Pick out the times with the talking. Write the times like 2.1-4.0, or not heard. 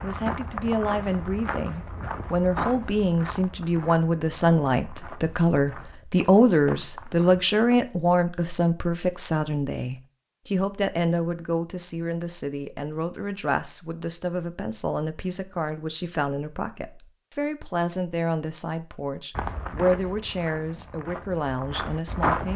0.0-22.5.